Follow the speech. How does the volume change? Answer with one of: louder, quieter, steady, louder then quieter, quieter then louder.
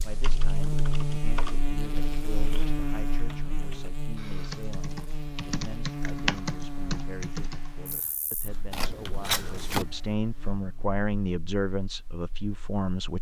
louder.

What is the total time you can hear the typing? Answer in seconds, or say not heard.
10 s.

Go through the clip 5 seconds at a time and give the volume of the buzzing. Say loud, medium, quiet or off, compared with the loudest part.
loud, medium, quiet.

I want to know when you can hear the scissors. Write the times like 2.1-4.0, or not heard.
8.7-9.8.